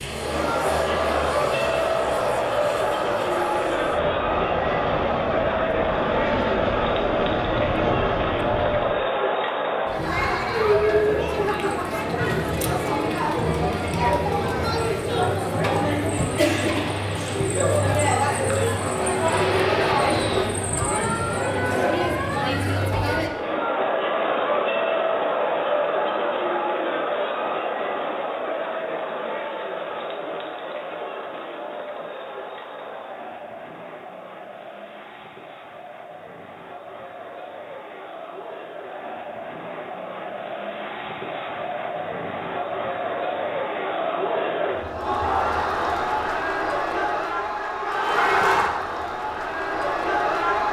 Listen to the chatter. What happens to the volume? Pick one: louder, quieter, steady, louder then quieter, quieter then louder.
quieter then louder.